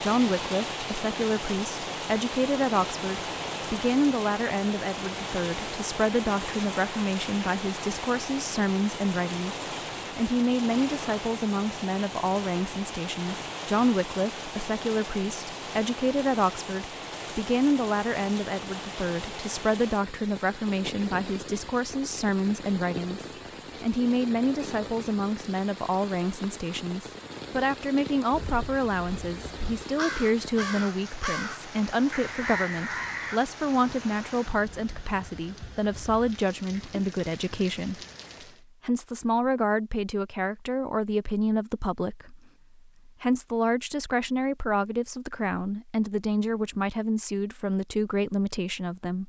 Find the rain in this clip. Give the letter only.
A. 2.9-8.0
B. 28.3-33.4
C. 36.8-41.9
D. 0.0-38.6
D.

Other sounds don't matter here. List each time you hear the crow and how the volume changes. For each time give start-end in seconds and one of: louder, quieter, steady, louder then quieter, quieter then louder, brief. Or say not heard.
28.3-33.4 louder.